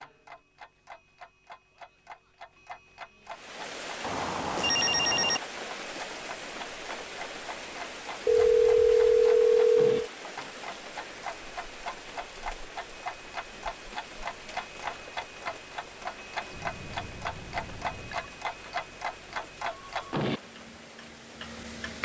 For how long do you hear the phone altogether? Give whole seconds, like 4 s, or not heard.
5 s.